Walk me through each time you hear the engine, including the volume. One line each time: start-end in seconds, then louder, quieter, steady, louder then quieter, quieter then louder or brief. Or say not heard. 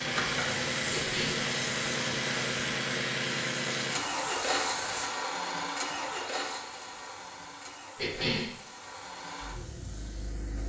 0.0-10.6 quieter.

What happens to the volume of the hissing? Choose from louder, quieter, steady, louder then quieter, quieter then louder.
quieter.